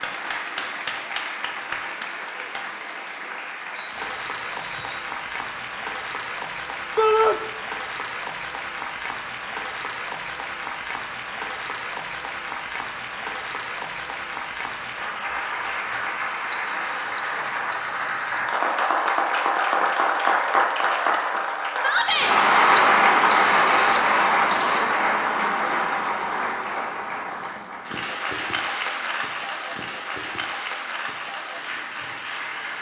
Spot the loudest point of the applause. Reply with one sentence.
The volume of the applause peaks at 23 seconds.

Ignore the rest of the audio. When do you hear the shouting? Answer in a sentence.
You can hear the shouting from 7.0 to 7.4 s and from 21.8 to 22.4 s.